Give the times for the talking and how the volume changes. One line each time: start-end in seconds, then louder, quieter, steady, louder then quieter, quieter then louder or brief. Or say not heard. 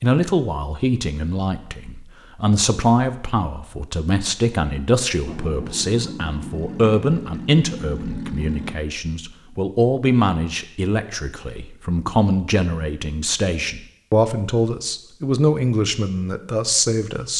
0.0-17.3 steady.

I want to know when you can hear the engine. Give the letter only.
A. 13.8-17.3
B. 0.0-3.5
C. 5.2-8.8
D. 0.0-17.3
C.